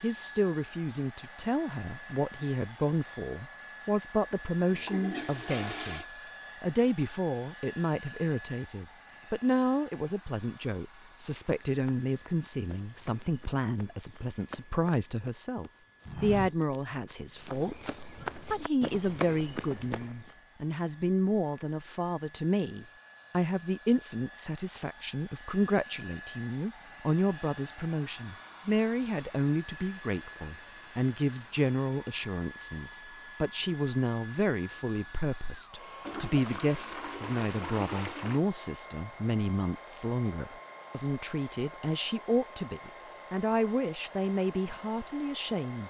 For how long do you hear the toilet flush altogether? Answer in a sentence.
You can hear the toilet flush for 4 seconds altogether.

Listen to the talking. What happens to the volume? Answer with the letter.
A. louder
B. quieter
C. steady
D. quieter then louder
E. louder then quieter
C.